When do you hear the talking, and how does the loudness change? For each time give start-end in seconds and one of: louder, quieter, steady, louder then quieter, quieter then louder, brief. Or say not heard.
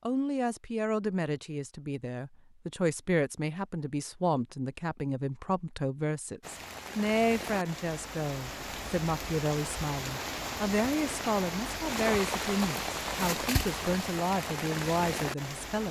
0.0-15.8 steady.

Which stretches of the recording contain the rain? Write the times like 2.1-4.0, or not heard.
6.4-15.8.